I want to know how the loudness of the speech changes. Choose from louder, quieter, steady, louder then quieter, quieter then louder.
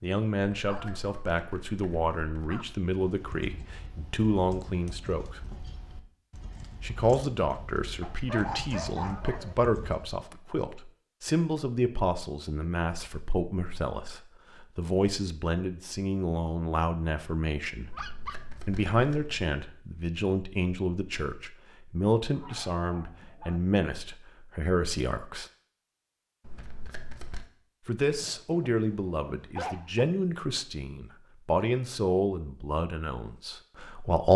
steady.